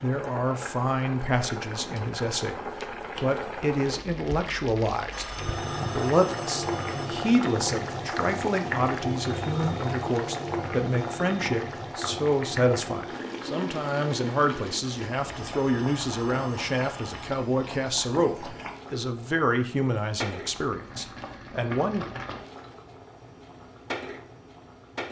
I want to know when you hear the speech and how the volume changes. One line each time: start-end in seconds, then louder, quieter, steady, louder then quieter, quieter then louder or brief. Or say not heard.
0.0-22.1 steady.